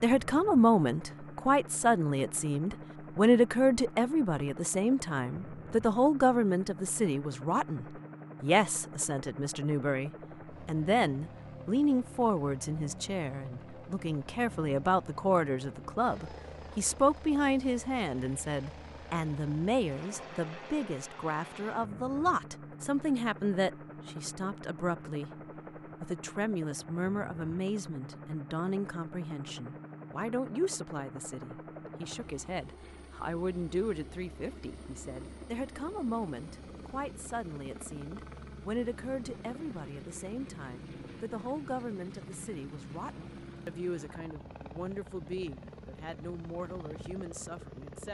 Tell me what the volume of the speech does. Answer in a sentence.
The volume of the speech goes down.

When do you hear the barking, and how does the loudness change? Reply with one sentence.
The barking can't be heard in this clip.